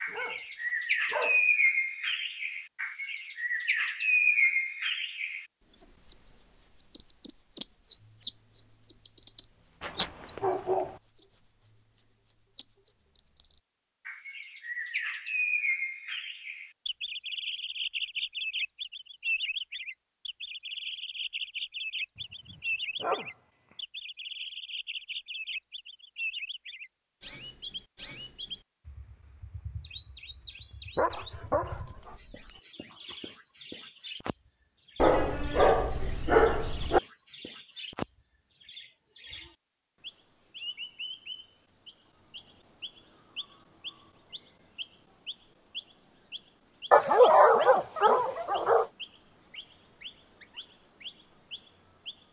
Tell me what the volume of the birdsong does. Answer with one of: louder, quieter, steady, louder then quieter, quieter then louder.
quieter.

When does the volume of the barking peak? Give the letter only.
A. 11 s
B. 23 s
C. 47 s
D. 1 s
C.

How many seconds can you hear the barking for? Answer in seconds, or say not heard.
9 s.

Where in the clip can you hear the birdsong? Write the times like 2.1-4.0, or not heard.
0.0-52.2.